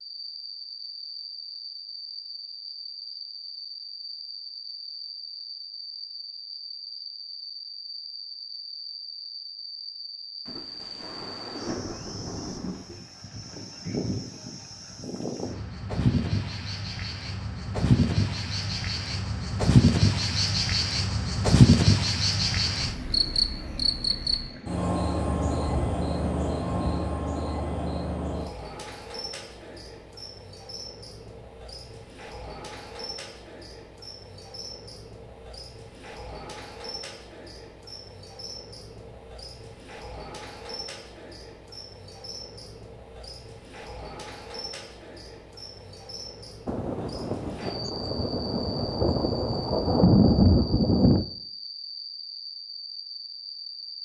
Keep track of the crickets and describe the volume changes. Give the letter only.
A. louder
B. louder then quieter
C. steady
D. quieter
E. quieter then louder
B.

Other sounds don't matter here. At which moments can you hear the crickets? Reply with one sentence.
You can hear the crickets from 0.0 to 54.0 s.